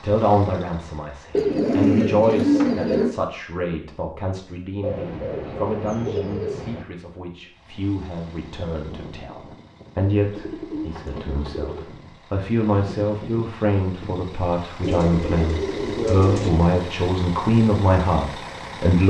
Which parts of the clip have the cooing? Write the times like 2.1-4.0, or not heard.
1.3-3.1, 4.8-6.8, 10.3-11.8, 14.8-16.5.